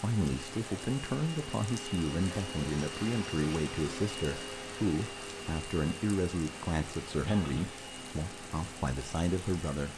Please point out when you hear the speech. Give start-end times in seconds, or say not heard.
0.0-9.9.